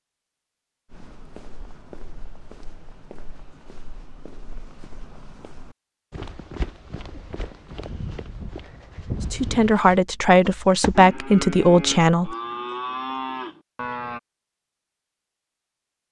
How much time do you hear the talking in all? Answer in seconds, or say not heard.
3 s.